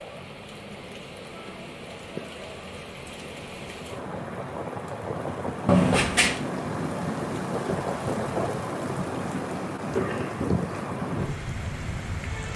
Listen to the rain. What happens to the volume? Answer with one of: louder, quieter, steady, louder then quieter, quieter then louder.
louder.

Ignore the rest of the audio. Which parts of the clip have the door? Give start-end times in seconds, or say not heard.
5.7-6.4.